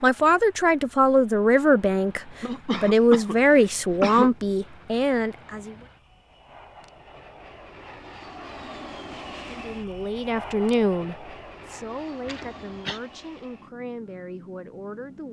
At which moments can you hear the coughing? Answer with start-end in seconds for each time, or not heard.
2.4-4.3, 12.2-13.0.